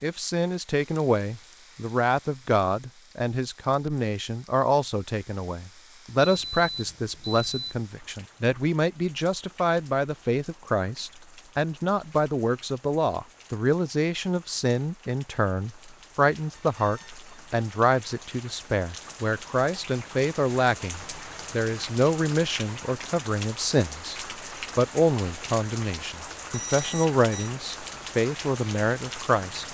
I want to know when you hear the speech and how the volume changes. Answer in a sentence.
The speech can be heard from 0.0 to 29.6 s, at a steady volume.